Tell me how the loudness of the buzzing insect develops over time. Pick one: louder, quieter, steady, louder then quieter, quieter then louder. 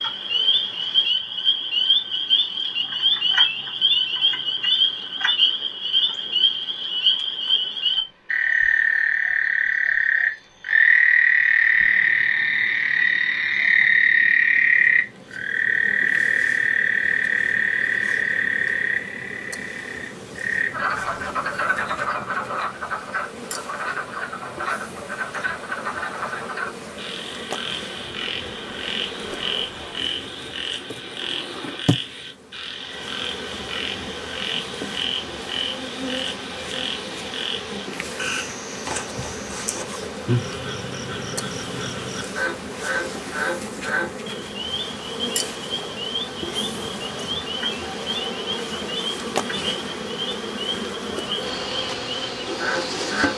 louder.